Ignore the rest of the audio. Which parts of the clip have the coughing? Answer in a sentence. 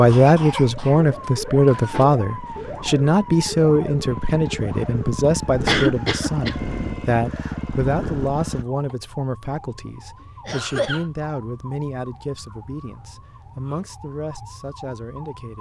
You can hear the coughing from 0.1 to 2.0 s, from 5.7 to 6.5 s and from 10.4 to 11.1 s.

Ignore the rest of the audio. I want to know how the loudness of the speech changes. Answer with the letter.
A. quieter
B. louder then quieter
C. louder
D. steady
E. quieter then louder
A.